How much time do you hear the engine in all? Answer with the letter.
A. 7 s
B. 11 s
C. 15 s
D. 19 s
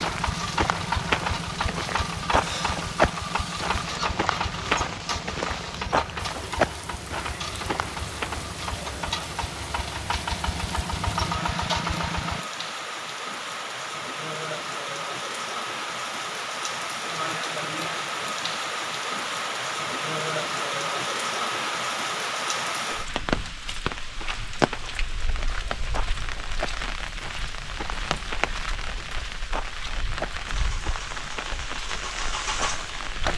C.